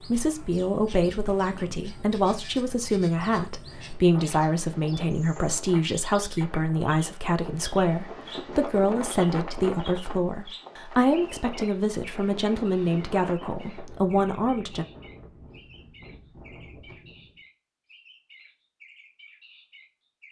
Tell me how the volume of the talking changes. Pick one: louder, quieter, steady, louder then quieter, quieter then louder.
steady.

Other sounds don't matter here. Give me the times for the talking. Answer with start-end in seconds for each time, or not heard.
0.0-14.8.